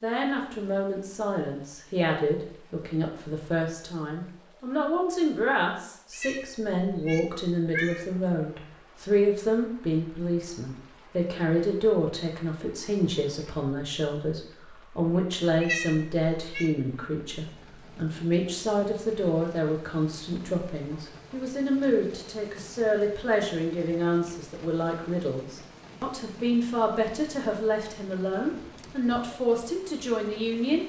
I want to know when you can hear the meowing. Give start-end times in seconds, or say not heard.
6.1-8.0, 15.6-16.7.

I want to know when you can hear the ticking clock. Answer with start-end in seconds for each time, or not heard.
not heard.